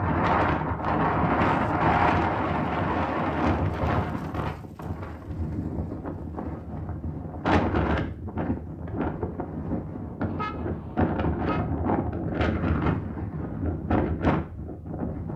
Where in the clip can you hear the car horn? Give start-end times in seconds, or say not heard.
10.2-11.6.